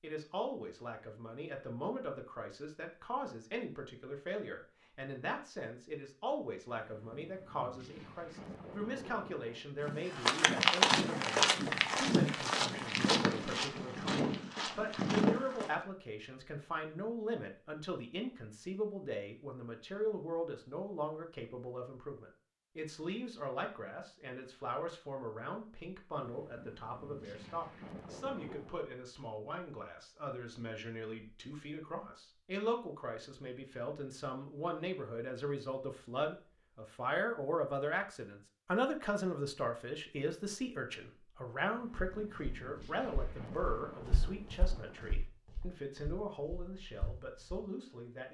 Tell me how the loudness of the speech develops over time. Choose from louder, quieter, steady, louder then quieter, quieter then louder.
steady.